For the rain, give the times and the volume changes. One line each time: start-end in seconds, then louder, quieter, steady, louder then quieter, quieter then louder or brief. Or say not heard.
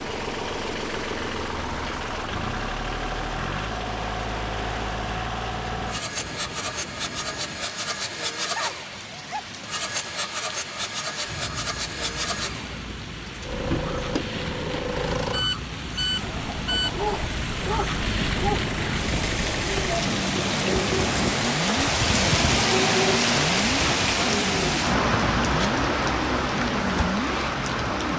0.0-28.1 louder.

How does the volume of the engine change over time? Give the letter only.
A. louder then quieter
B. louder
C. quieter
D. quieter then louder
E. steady
E.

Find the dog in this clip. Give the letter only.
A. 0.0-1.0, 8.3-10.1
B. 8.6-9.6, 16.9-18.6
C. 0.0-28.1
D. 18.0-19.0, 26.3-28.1
B.